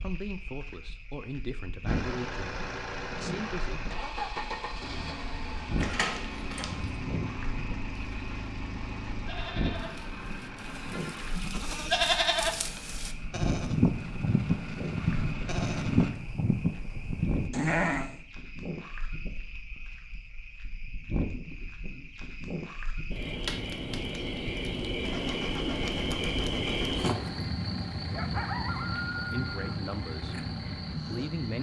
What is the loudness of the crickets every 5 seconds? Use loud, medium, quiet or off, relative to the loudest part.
medium, medium, medium, medium, medium, loud, medium.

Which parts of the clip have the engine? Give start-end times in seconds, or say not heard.
1.9-16.1, 25.0-31.5.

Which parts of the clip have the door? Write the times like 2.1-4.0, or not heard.
5.8-7.0.